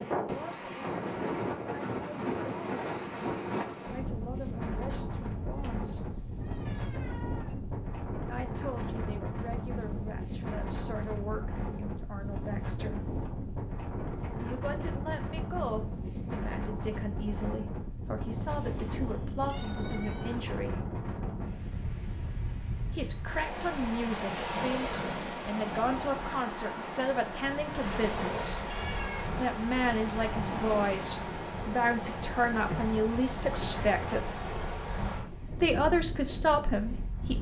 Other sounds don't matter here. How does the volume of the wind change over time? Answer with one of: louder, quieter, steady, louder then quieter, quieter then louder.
steady.